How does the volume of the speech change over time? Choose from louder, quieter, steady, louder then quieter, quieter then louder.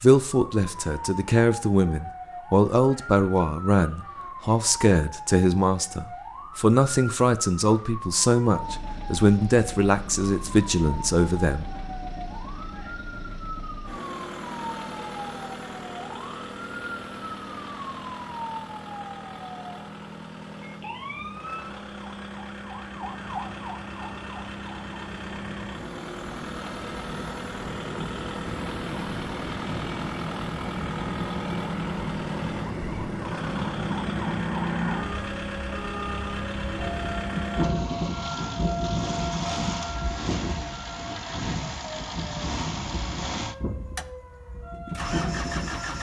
steady.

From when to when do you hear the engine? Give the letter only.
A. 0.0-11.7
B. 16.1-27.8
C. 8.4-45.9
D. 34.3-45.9
C.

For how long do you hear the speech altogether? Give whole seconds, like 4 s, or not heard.
12 s.